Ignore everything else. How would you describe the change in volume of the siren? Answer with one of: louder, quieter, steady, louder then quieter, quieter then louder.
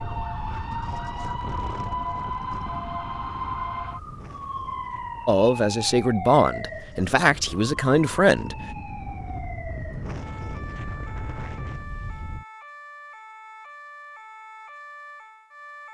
quieter.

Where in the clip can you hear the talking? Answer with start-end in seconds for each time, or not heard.
5.2-8.6.